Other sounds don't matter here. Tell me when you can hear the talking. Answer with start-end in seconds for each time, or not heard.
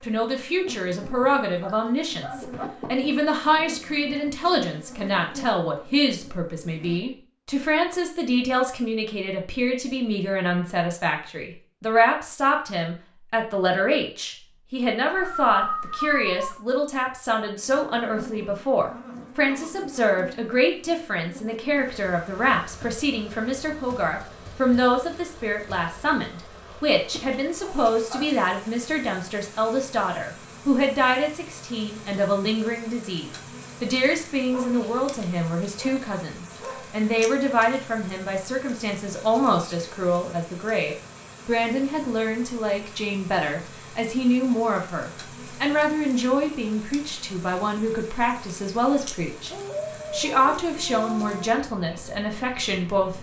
0.0-49.5, 50.1-53.1.